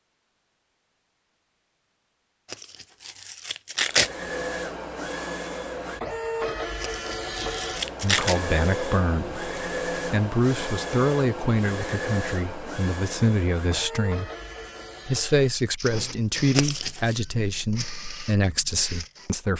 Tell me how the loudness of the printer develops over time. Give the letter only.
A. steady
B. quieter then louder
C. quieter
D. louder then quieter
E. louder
C.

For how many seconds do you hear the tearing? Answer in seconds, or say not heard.
4 s.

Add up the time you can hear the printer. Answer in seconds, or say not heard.
16 s.